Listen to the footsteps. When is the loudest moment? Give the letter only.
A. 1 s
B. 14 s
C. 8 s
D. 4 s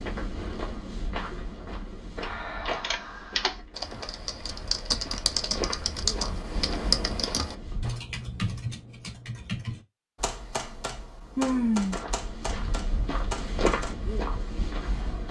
B.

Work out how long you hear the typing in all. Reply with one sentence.
You can hear the typing for 11 seconds altogether.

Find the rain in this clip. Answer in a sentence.
The rain can't be heard in this clip.